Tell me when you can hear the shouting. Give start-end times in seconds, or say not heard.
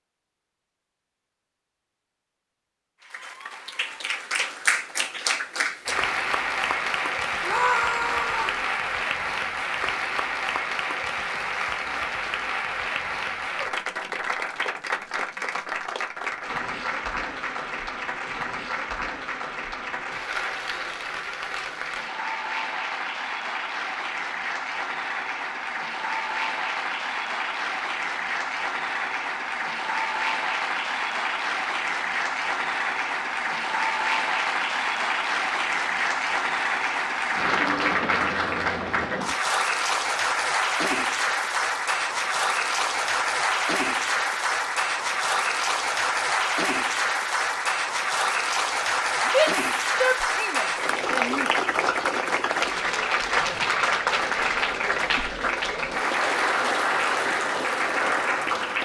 7.4-8.6, 49.3-51.5.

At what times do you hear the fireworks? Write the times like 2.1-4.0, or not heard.
not heard.